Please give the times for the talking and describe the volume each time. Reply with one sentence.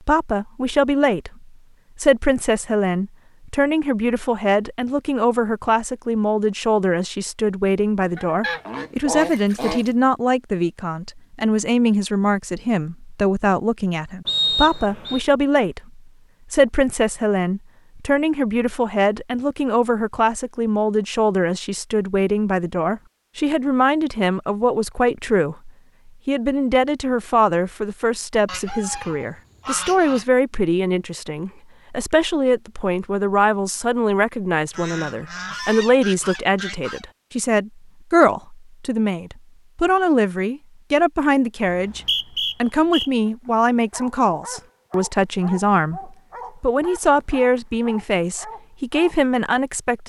You can hear the talking from 0.1 to 50.0 s, at a steady volume.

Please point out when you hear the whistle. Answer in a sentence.
The whistle can be heard from 14.2 to 15.2 s and from 41.6 to 43.1 s.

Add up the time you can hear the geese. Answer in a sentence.
The geese can be heard for 6 seconds in total.